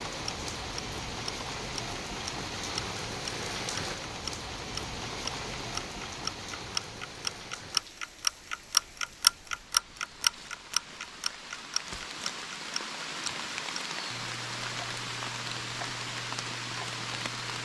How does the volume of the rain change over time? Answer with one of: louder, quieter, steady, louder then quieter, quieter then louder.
quieter then louder.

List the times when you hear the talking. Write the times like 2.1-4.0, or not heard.
not heard.